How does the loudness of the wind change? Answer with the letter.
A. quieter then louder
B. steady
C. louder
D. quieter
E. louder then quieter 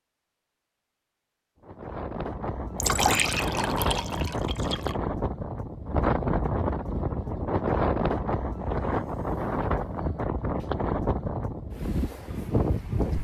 B.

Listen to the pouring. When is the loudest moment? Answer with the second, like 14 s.
3 s.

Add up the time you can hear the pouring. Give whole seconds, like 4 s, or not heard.
2 s.